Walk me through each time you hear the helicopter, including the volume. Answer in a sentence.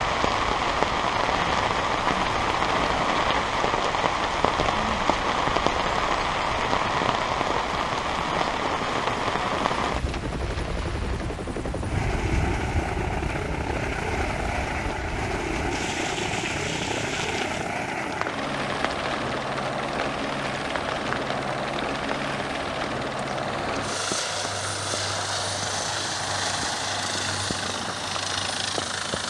The helicopter can be heard from 0.1 to 29.2 s, getting louder.